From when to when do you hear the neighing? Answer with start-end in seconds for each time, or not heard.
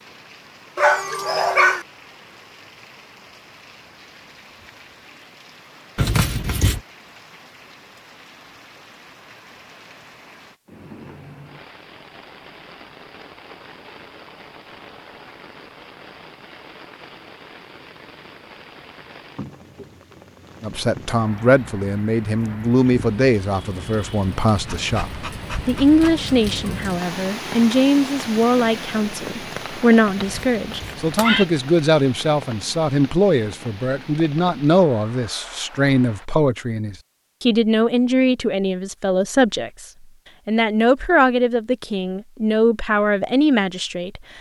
6.0-6.8, 30.1-31.4.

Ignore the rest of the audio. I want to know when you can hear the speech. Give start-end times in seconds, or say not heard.
20.6-39.9, 40.5-44.2.